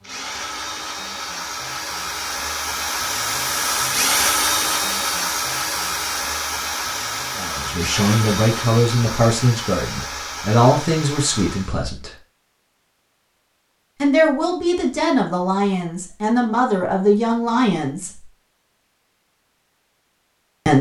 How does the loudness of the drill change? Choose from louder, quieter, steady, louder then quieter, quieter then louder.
louder then quieter.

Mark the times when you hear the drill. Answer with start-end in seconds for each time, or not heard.
0.0-11.9.